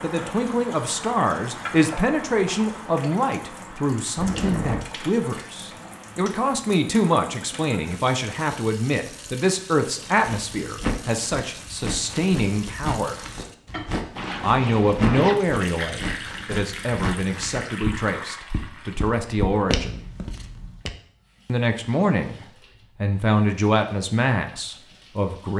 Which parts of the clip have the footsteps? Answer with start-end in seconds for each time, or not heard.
10.0-20.9.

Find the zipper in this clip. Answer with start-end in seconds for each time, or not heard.
4.2-4.9, 14.2-15.4.